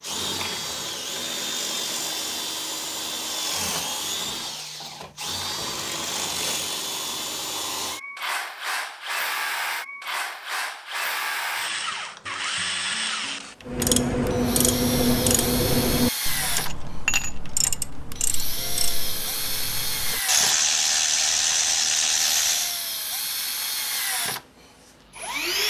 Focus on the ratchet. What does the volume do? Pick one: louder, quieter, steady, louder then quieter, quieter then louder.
quieter then louder.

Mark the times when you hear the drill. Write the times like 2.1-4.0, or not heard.
0.0-25.6.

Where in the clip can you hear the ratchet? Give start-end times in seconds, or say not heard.
13.7-22.8.